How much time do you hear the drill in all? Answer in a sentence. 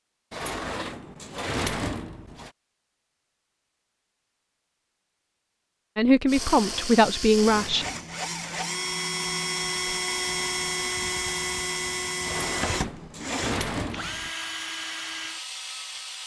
The drill can be heard for 10 seconds in total.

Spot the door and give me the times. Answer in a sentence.
You can hear the door from 0.3 to 2.5 s, from 6.3 to 8.7 s and from 12.2 to 14.3 s.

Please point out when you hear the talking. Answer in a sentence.
You can hear the talking from 6.0 to 7.8 s.